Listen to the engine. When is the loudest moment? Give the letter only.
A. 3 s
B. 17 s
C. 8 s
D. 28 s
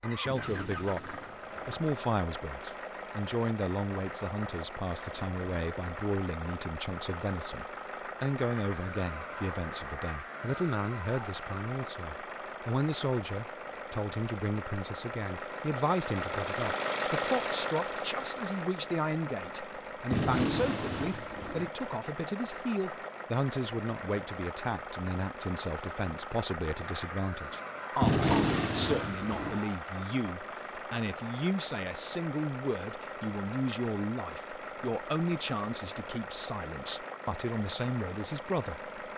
B.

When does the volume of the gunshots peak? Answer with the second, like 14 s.
28 s.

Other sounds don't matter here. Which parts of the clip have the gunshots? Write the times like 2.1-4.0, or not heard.
0.2-1.8, 20.1-21.7, 28.0-29.6.